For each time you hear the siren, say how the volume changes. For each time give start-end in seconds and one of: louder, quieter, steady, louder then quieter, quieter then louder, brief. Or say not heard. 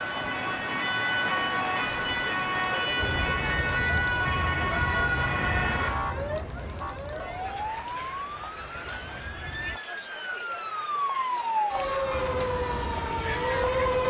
0.0-14.0 quieter then louder.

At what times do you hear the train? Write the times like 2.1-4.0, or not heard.
3.0-9.8, 12.1-14.0.